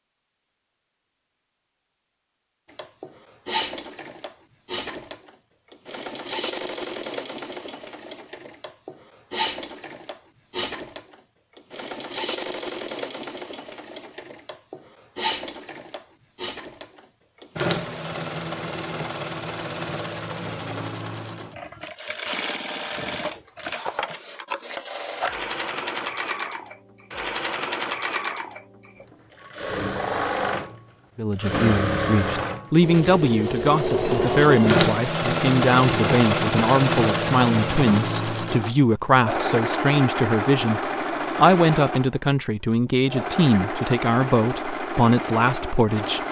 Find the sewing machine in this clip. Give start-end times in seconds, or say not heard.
2.6-46.2.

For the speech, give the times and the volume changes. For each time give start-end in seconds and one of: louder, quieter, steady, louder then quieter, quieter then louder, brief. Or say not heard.
31.1-46.2 steady.